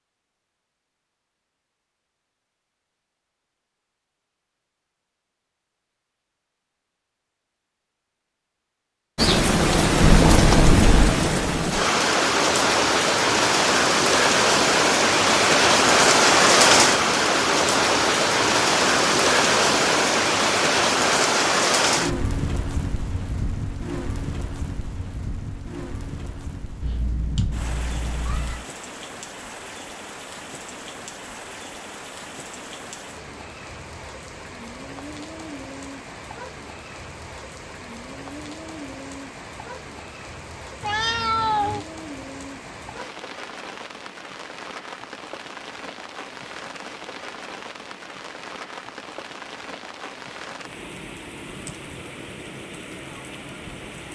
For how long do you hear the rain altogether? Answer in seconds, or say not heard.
45 s.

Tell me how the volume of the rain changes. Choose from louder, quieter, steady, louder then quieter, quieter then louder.
quieter.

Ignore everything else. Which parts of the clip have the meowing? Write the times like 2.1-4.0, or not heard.
10.0-11.2, 26.8-28.6, 40.8-41.9.